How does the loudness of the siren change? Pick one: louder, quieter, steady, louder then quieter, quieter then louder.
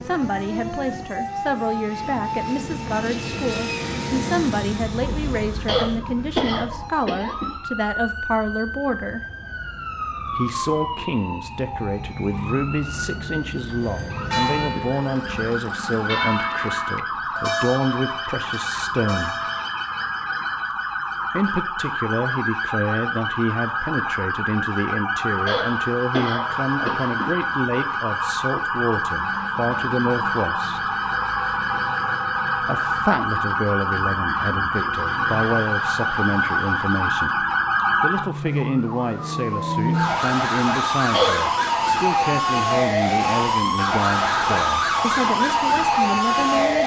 louder.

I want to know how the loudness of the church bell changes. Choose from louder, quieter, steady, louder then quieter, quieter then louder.
quieter.